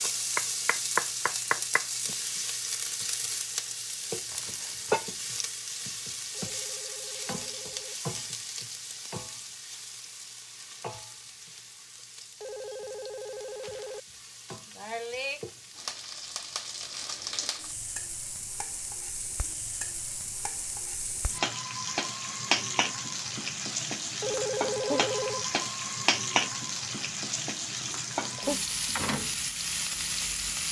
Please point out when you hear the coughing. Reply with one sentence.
You can't hear the coughing here.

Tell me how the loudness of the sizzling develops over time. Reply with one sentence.
The loudness of the sizzling goes down, then up.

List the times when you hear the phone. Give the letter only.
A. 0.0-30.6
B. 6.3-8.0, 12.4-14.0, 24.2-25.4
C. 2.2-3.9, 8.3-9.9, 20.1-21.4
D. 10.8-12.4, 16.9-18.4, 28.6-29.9
B.